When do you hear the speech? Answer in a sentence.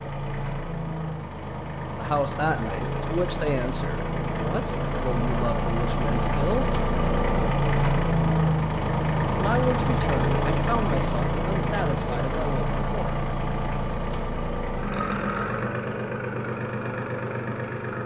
The speech can be heard from 2.0 to 6.8 s and from 9.3 to 13.2 s.